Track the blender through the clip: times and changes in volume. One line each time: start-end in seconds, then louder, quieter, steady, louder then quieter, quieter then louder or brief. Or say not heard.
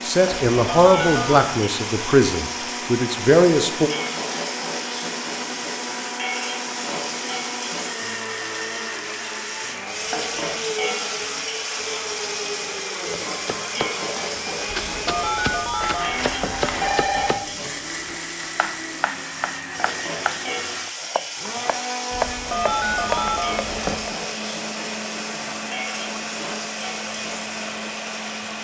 0.0-28.6 steady.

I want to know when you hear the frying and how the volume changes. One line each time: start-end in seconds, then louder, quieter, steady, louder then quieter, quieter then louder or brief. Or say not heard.
0.0-28.6 steady.